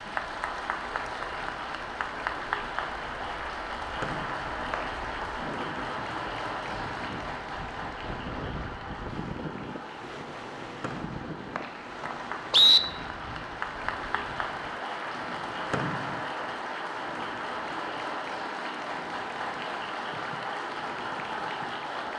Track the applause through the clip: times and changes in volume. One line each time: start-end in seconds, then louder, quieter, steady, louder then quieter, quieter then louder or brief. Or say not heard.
0.0-22.1 quieter then louder.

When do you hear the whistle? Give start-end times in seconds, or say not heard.
4.0-5.2, 10.8-12.8, 15.7-16.2.